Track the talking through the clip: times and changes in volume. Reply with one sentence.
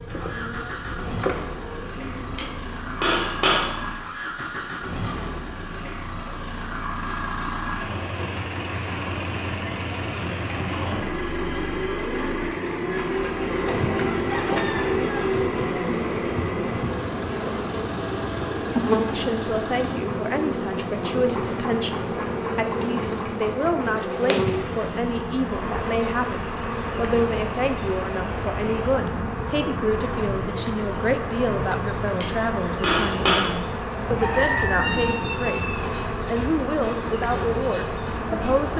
The talking can be heard from 19.1 to 38.7 s, at a steady volume.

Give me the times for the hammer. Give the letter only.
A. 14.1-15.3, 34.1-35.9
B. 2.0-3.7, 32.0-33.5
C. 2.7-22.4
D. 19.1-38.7
B.